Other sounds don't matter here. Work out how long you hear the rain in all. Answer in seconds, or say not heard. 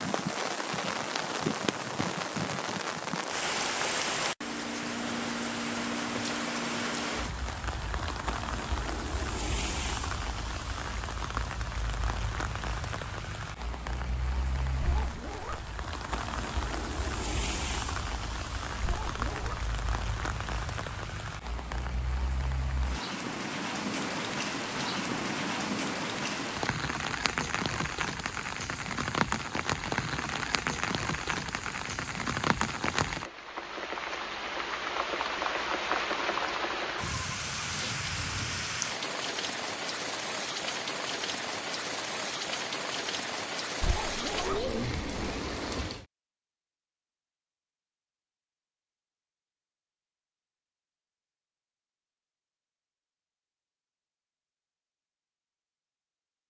46 s.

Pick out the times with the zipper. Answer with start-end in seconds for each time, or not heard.
14.8-15.7, 18.8-19.6, 43.8-45.4.